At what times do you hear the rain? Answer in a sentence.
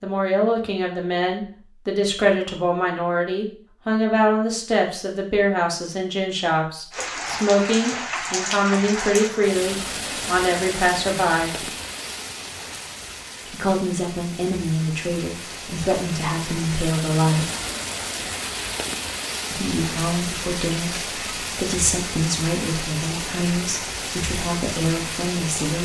You can hear the rain from 6.9 to 25.8 s.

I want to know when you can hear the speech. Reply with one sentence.
You can hear the speech from 0.0 to 11.7 s, from 13.4 to 17.5 s and from 19.5 to 25.8 s.